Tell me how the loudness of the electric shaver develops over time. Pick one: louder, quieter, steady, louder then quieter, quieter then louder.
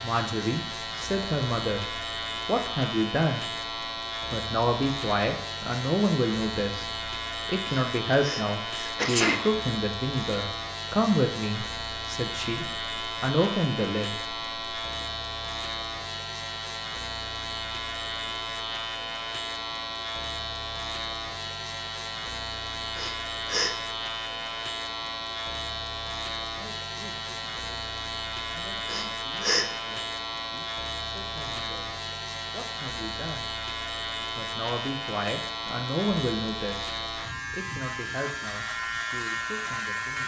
steady.